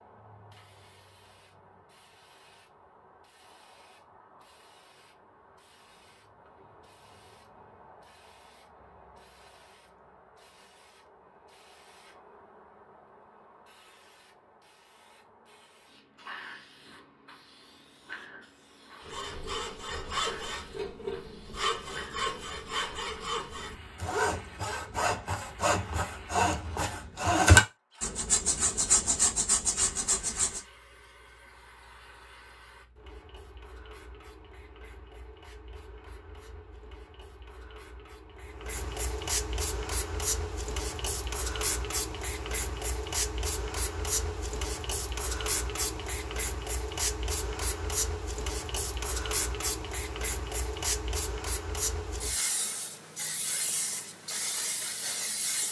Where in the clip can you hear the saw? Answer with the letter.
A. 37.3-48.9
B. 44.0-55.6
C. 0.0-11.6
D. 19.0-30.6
D.